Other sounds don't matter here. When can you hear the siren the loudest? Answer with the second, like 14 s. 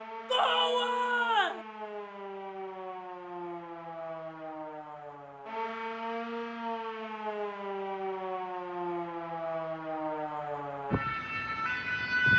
12 s.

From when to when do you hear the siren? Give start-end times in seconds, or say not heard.
0.0-12.3.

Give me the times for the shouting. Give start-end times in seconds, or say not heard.
0.3-1.6.